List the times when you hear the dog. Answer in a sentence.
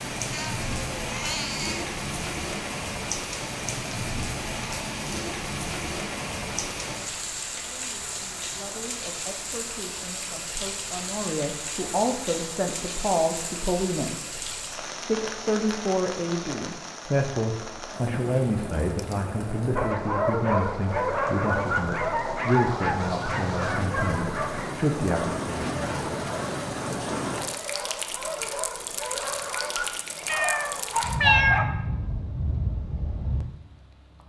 The dog can be heard from 19.8 to 31.6 s.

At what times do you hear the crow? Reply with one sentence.
You can't hear the crow here.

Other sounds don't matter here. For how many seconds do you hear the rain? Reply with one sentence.
You can hear the rain for 34 seconds altogether.